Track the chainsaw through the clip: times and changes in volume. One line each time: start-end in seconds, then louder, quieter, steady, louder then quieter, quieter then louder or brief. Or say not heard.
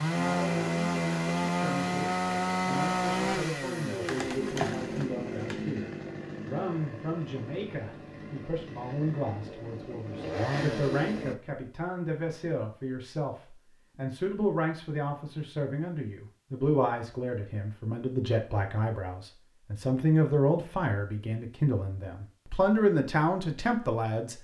0.0-11.3 quieter then louder.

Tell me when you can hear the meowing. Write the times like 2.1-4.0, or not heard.
not heard.